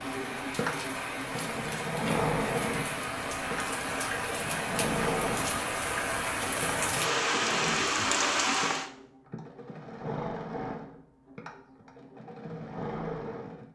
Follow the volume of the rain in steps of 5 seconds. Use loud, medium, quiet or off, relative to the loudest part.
medium, loud, off.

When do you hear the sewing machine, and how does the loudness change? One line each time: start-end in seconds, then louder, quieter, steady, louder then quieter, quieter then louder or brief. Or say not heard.
0.0-13.7 quieter.